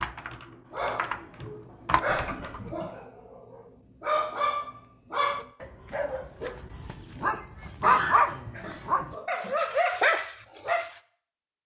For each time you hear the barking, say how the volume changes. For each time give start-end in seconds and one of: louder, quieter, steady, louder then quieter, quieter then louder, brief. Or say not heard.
0.7-11.0 louder.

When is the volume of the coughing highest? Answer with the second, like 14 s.
8 s.